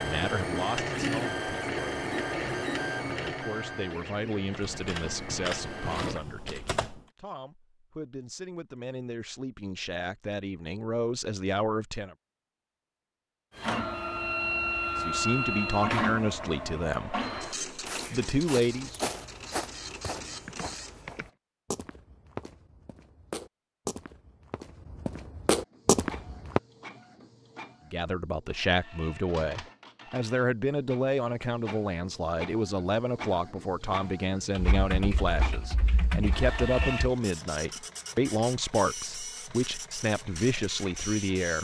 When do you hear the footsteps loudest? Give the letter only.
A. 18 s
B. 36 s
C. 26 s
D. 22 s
C.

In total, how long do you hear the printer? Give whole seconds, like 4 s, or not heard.
30 s.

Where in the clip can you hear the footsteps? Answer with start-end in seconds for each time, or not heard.
17.9-26.6.